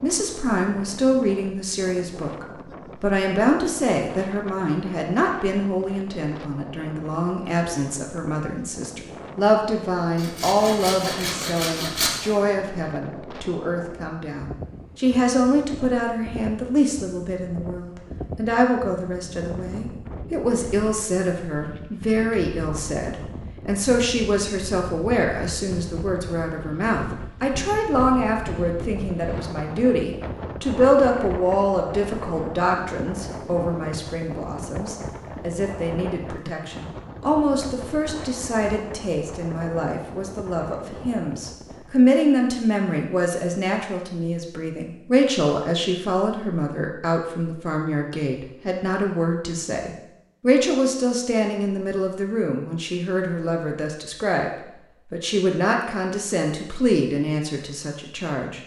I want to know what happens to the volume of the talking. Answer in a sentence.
The loudness of the talking stays about the same.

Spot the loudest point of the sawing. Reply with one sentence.
The loudest moment of the sawing is at 12 seconds.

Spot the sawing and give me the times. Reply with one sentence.
You can hear the sawing from 10.2 to 12.1 s.